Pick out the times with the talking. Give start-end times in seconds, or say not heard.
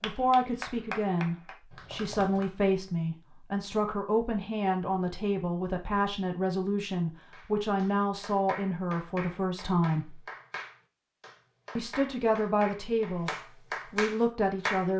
0.0-10.2, 11.8-14.9.